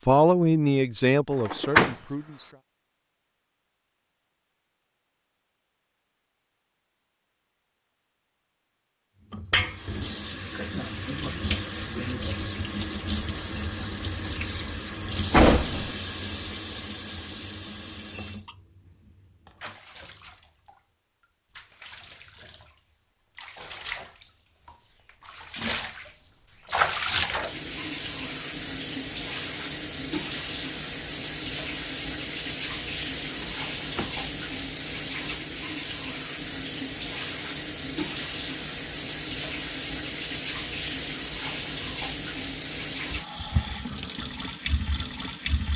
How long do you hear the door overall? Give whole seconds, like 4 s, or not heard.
2 s.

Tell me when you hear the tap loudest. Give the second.
27 s.